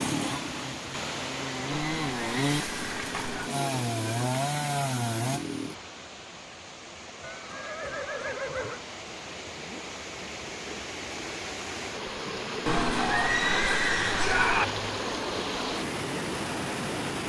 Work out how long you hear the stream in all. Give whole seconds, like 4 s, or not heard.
17 s.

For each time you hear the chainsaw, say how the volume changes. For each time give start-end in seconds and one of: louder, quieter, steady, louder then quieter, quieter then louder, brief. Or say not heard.
0.0-5.8 louder.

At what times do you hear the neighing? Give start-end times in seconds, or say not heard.
1.7-3.5, 7.2-8.8, 12.7-14.7.